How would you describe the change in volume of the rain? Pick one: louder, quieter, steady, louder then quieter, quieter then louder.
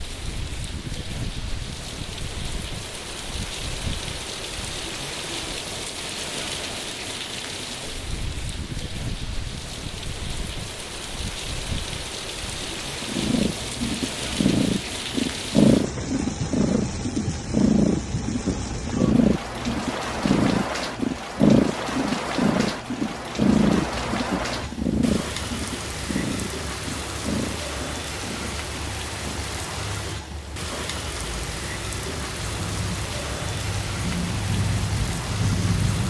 steady.